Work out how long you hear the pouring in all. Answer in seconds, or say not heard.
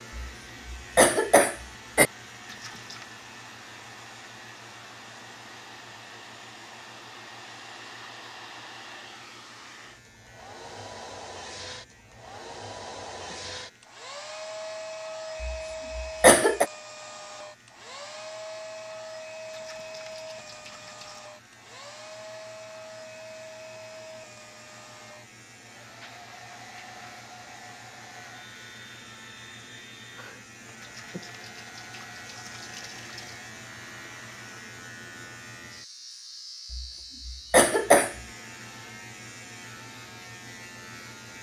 5 s.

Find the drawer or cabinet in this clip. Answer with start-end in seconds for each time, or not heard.
not heard.